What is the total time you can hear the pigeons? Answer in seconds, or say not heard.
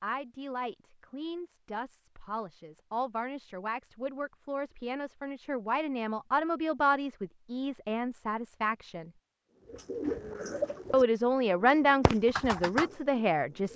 4 s.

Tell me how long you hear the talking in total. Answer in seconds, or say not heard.
12 s.